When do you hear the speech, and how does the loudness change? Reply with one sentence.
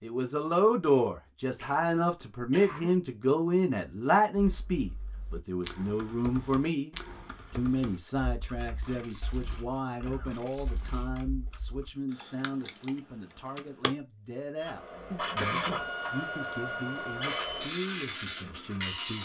You can hear the speech from 0.0 to 19.1 s, getting quieter.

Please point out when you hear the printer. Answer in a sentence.
You can hear the printer from 14.6 to 19.1 s.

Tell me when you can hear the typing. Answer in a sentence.
You can hear the typing from 4.3 to 13.9 s.